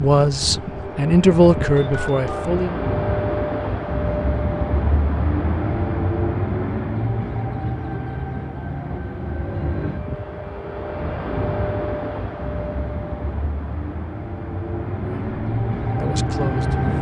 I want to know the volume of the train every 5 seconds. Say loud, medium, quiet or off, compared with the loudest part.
loud, loud, medium, loud.